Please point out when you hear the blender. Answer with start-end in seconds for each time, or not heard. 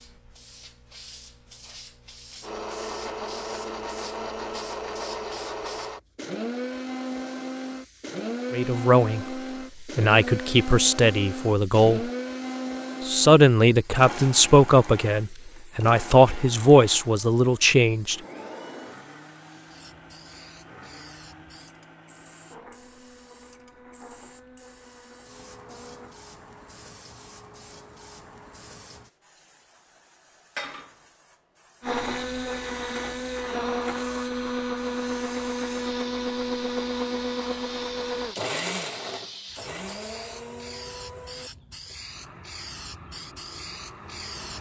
2.4-26.2, 31.8-44.5.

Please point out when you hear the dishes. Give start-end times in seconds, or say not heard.
not heard.